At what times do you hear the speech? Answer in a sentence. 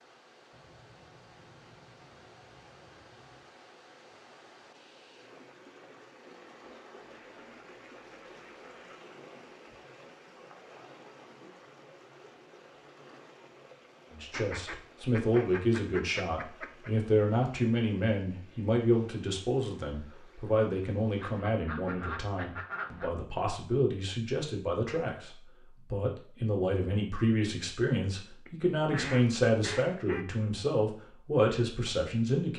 The speech can be heard from 14.1 to 32.5 s.